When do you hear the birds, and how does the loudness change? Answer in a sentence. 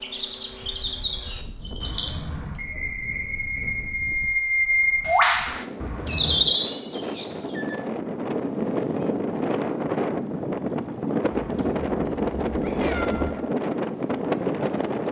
You can hear the birds from 0.0 to 7.8 s, getting louder.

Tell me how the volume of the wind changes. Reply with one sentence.
The volume of the wind goes up.